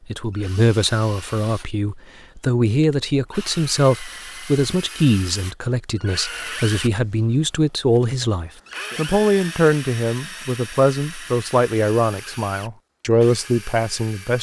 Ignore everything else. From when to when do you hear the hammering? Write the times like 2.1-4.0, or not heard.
not heard.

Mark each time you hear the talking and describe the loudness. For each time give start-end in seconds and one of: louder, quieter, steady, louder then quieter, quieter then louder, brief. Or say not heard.
0.1-14.3 steady.